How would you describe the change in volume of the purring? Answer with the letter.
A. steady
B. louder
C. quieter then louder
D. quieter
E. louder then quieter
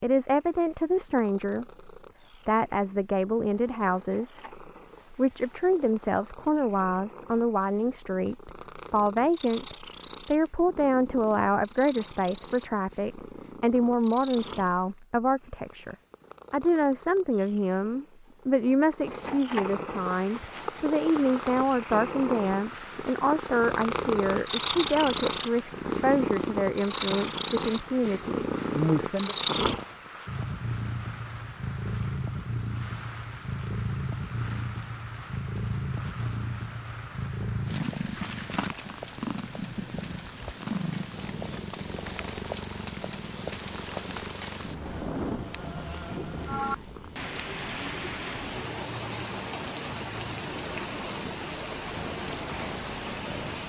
E.